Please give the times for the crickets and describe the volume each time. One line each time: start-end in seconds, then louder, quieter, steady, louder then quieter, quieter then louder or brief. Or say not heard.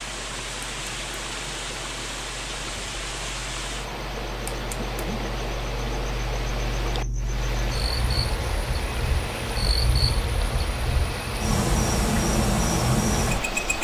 0.0-13.7 louder.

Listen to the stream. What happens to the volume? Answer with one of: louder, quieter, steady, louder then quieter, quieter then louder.
steady.